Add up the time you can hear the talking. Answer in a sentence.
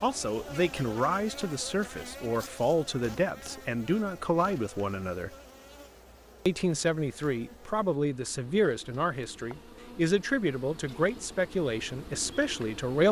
The talking can be heard for 12 seconds in total.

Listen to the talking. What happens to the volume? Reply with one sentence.
The loudness of the talking stays about the same.